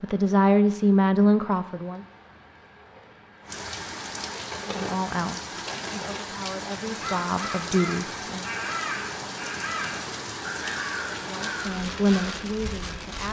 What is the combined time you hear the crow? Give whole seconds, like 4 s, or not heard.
6 s.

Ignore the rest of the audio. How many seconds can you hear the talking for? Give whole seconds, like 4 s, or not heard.
8 s.